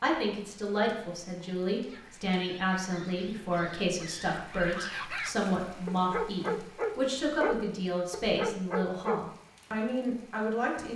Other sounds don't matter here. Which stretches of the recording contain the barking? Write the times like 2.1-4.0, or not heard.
1.9-9.2.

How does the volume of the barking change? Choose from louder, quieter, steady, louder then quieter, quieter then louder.
louder.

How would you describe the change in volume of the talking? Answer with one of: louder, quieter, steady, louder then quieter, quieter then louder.
steady.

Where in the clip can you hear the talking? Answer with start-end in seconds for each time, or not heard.
0.0-10.9.